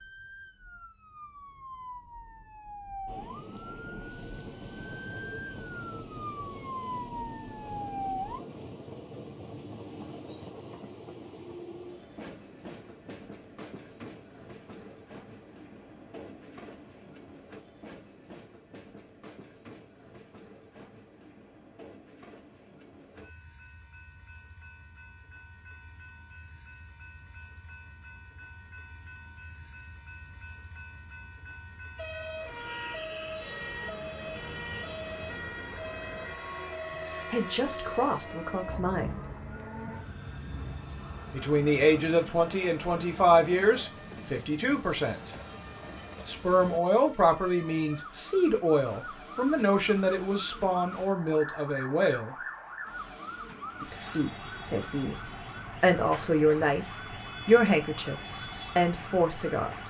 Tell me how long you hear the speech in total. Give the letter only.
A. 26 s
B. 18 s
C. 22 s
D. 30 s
B.